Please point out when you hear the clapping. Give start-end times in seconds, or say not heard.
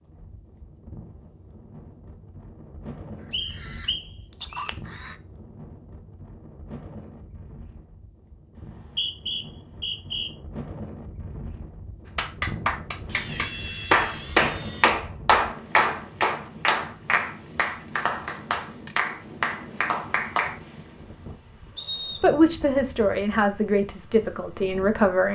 12.1-20.6.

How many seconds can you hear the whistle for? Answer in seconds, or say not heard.
4 s.